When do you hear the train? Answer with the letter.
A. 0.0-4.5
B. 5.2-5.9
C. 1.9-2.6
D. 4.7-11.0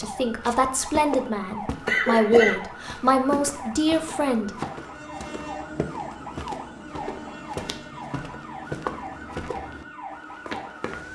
D.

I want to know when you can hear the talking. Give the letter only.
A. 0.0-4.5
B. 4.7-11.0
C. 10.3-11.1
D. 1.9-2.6
A.